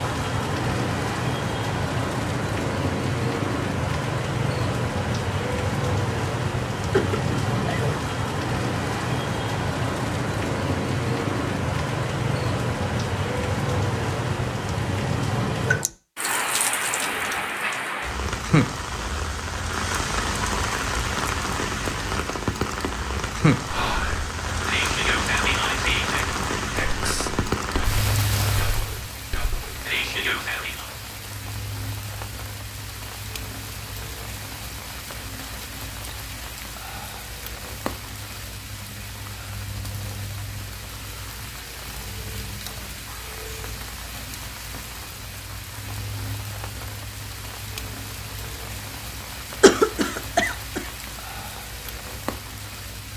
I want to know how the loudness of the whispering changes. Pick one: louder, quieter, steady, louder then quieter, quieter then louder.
quieter then louder.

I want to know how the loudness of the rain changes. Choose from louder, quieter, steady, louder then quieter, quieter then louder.
quieter.